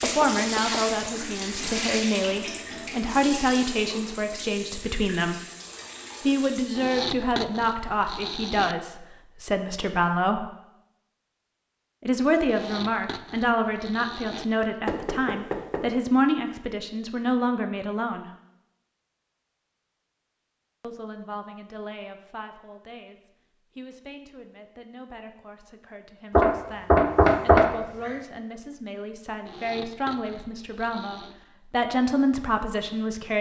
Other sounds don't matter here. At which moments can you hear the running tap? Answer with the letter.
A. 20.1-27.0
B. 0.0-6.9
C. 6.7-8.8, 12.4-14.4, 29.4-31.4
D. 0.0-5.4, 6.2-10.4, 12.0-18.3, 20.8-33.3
B.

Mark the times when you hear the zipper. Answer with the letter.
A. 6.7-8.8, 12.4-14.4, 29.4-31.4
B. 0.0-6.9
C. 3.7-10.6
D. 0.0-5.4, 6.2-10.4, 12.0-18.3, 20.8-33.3
A.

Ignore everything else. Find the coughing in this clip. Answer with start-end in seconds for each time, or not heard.
not heard.